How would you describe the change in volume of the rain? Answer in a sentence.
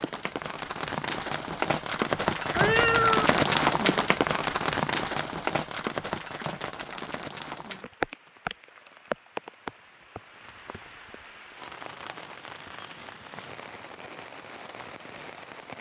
The loudness of the rain goes down.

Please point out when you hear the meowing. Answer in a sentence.
The meowing can be heard from 2.5 to 3.3 s.